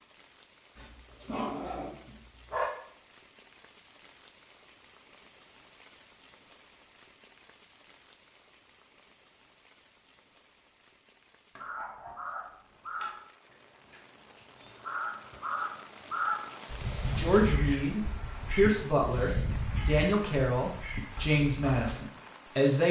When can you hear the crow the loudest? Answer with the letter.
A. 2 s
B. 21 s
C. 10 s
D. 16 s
D.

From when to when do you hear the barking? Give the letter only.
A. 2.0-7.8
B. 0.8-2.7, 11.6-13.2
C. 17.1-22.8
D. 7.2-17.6
B.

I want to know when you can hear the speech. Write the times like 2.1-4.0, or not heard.
17.1-22.8.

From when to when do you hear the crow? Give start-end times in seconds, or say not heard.
11.6-22.0.